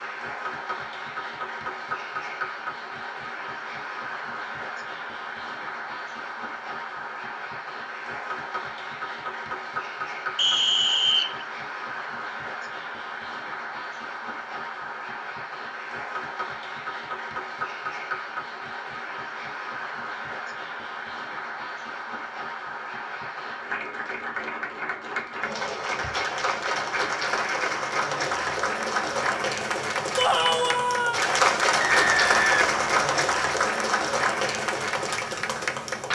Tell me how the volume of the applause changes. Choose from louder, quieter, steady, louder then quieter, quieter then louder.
louder.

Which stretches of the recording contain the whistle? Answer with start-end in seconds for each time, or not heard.
10.3-11.4, 31.8-33.0.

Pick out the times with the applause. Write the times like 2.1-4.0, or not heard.
0.0-36.1.